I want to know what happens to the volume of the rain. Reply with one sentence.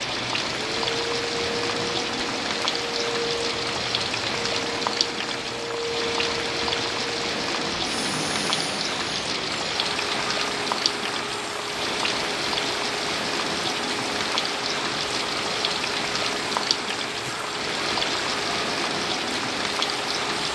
The volume of the rain stays about the same.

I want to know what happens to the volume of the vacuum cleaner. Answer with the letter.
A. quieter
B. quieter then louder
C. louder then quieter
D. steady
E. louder
D.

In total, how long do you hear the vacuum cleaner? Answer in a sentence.
The vacuum cleaner can be heard for 20 seconds in total.